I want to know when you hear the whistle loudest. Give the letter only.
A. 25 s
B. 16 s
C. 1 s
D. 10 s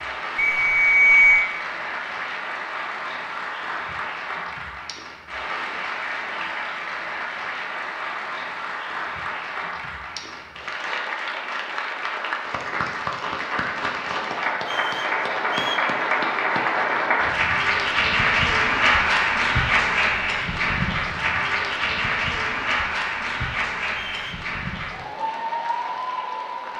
C.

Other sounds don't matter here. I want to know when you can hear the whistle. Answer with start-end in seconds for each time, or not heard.
0.3-1.5, 14.7-15.9, 23.9-24.3.